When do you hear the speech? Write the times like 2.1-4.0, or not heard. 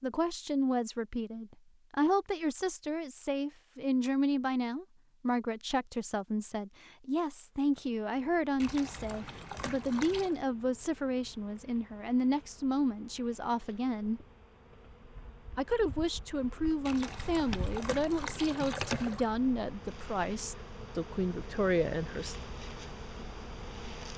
0.0-14.2, 15.6-22.4.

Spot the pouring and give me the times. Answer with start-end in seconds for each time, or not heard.
8.6-10.4, 16.9-19.3.